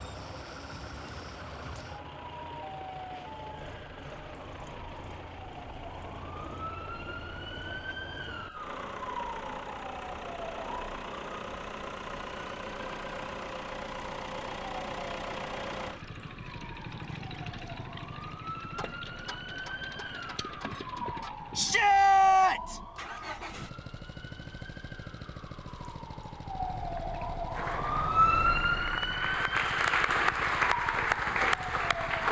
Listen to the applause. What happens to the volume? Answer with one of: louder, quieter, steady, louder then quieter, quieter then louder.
louder.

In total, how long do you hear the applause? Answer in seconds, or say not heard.
5 s.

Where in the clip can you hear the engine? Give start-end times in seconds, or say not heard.
0.0-32.2.